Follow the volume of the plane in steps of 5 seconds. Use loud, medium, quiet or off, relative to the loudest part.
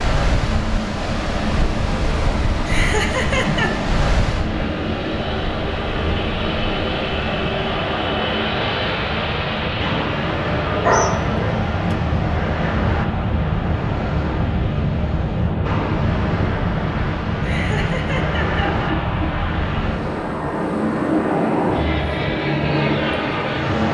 medium, loud, loud, loud, loud.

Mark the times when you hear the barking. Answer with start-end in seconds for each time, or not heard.
10.7-11.9.